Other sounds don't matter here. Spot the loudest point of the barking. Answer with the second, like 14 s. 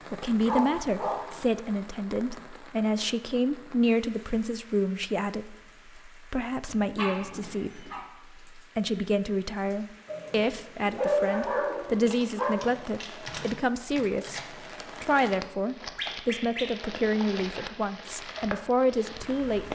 11 s.